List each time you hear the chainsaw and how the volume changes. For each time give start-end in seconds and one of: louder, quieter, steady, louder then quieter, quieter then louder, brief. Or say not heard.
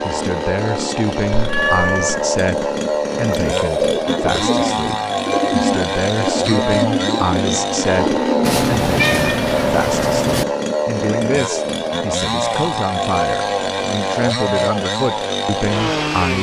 0.0-16.3 steady.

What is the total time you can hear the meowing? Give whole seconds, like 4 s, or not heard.
3 s.